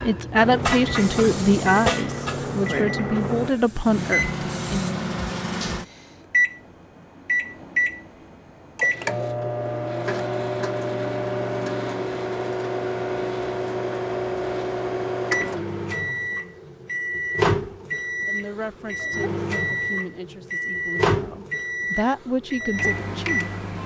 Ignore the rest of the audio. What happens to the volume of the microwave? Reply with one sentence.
The volume of the microwave stays about the same.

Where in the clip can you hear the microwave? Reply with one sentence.
You can hear the microwave from 0.0 to 23.8 s.